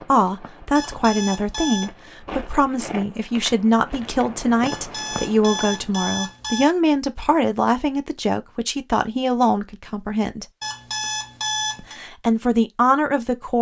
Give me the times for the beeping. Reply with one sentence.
The beeping can be heard from 0.8 to 1.9 s, from 4.7 to 6.7 s and from 10.6 to 11.9 s.